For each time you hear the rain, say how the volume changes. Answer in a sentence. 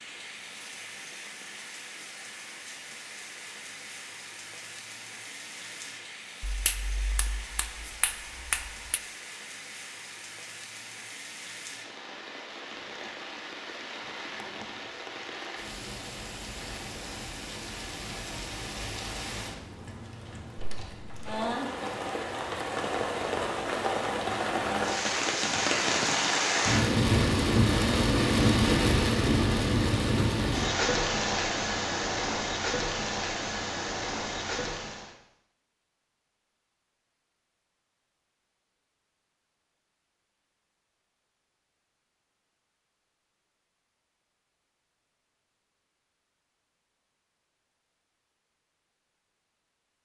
The rain can be heard from 0.0 to 35.1 s, getting louder.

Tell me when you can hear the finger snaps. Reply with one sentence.
The finger snaps can be heard from 6.4 to 9.0 s.